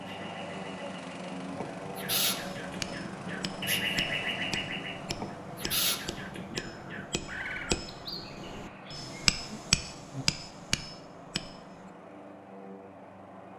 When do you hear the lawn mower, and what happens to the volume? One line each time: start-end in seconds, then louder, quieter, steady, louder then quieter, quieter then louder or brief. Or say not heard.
0.0-13.5 quieter.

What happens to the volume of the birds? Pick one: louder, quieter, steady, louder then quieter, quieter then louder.
louder then quieter.